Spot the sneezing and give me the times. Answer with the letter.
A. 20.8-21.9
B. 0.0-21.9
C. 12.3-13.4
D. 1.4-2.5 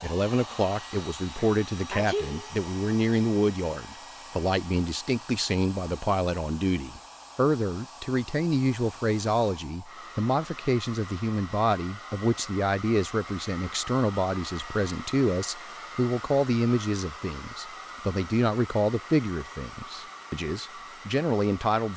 D.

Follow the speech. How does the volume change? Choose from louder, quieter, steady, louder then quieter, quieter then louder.
steady.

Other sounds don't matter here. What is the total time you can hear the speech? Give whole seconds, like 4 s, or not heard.
22 s.